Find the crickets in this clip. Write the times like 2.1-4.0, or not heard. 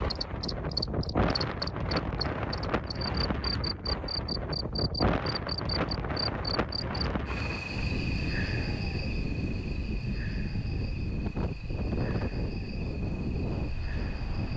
0.0-14.5.